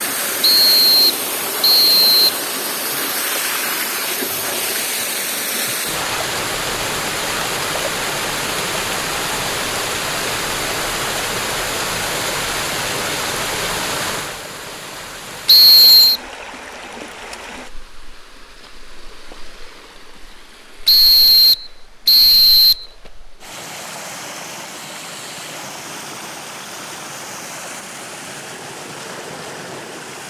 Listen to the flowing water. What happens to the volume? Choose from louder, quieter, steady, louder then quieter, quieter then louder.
quieter then louder.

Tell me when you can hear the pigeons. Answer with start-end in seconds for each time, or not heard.
not heard.